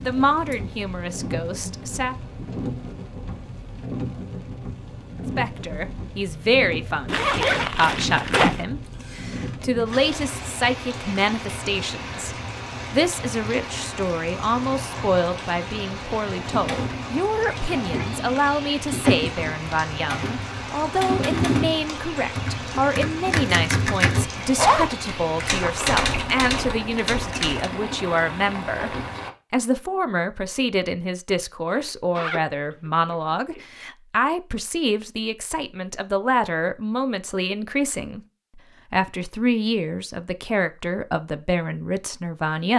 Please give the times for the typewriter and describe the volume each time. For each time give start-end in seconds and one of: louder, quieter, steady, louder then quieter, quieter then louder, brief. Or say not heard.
16.4-27.7 louder.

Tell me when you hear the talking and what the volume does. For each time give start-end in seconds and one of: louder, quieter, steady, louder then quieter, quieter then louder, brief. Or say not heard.
0.0-2.1 brief
5.3-42.7 steady.